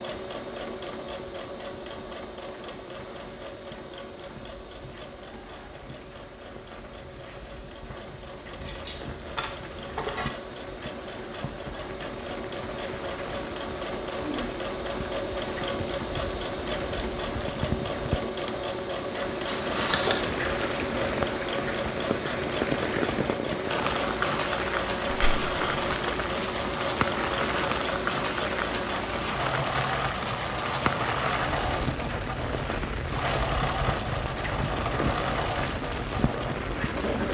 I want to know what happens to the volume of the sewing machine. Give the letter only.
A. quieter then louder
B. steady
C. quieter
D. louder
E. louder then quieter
D.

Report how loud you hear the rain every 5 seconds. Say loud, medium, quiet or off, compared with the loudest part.
quiet, quiet, medium, medium, loud, loud, loud, loud.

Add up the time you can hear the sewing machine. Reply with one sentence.
The sewing machine can be heard for 37 seconds in total.